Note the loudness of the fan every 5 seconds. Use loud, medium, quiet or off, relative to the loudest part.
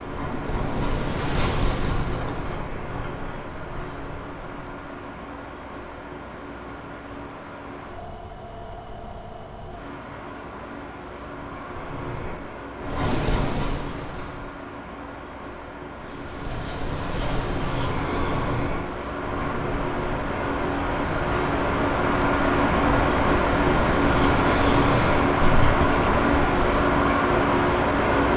quiet, quiet, quiet, quiet, loud, loud.